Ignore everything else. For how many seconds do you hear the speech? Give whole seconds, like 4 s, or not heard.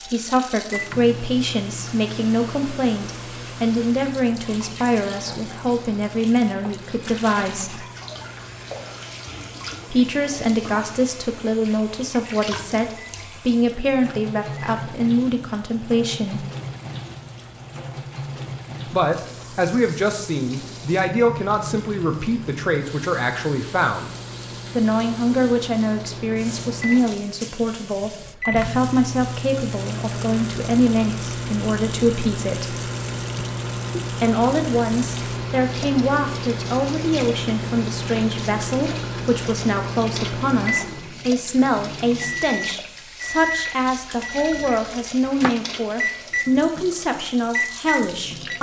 42 s.